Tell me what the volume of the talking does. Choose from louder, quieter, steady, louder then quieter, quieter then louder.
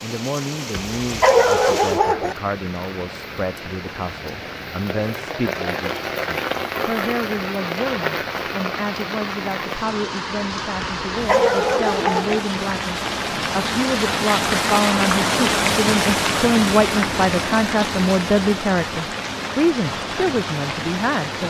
louder.